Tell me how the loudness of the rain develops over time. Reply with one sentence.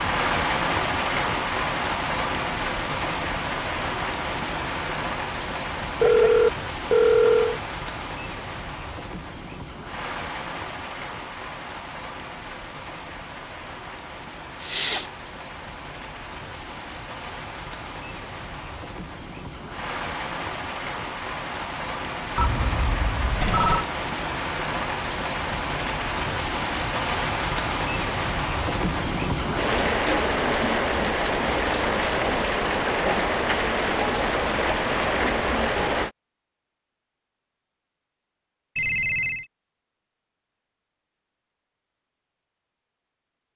The volume of the rain goes down, then up.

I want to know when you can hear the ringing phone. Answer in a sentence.
The ringing phone can be heard from 6.0 to 7.6 s, from 22.4 to 23.9 s and from 38.8 to 39.5 s.